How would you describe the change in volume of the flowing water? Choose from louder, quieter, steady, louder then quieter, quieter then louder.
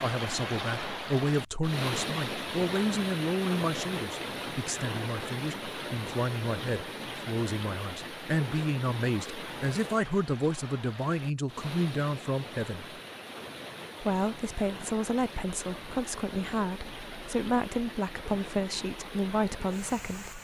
quieter.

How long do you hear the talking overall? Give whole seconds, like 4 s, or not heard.
19 s.